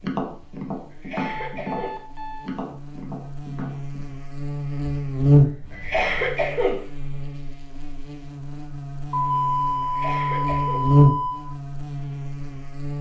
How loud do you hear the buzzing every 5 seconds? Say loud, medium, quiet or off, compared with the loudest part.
quiet, loud, loud.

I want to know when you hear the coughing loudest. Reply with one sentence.
The loudest moment of the coughing is at 6 seconds.